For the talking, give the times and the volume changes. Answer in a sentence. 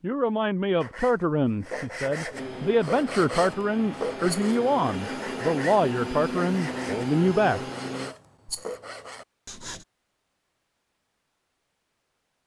The talking can be heard from 0.0 to 7.6 s, at a steady volume.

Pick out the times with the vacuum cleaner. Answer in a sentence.
The vacuum cleaner can be heard from 2.3 to 8.2 s.